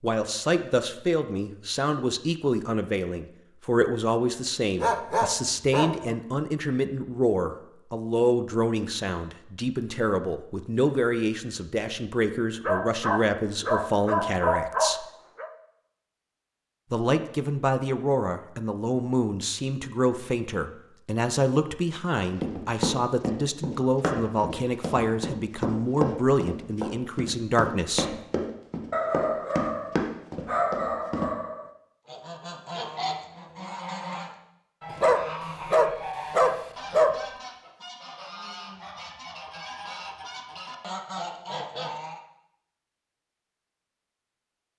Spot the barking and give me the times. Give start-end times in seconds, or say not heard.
4.8-6.2, 12.7-15.5, 28.9-31.6, 34.9-37.1.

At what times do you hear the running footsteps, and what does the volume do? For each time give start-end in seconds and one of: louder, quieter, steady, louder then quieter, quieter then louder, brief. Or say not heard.
22.4-31.2 steady.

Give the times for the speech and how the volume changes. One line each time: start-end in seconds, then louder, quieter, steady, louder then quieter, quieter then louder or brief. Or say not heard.
0.0-15.1 steady
16.9-28.1 steady.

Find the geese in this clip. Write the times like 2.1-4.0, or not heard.
32.0-42.2.